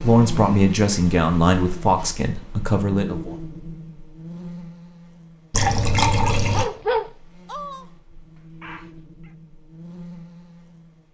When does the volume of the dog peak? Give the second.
7 s.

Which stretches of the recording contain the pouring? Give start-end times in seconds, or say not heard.
5.5-6.7.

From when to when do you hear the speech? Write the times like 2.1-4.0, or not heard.
0.0-3.4.